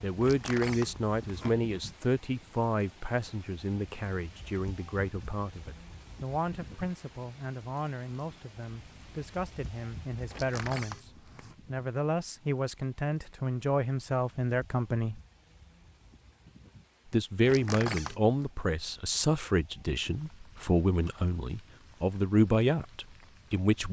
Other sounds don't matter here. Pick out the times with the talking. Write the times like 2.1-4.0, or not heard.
0.0-15.2, 17.1-23.8.